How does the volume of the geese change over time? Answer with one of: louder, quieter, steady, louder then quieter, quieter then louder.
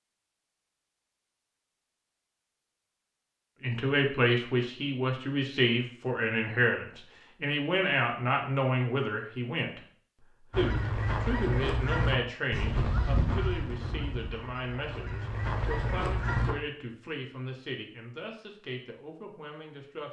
quieter then louder.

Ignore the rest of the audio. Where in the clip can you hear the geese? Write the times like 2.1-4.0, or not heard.
10.5-16.6.